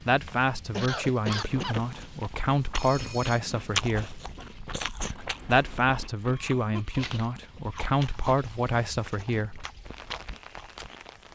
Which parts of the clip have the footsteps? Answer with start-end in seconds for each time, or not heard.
not heard.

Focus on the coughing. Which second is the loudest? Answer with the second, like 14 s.
1 s.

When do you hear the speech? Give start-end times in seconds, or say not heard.
0.1-4.2, 5.5-9.7.